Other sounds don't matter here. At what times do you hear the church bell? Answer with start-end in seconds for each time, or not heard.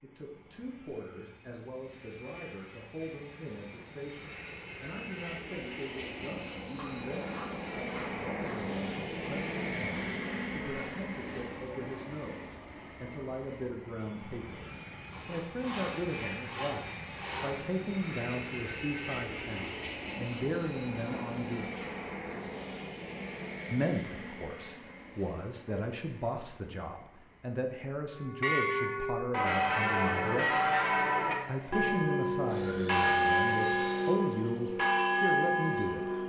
28.1-36.2.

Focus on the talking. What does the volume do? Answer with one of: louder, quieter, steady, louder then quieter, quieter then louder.
louder.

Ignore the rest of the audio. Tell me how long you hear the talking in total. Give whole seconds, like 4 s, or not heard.
34 s.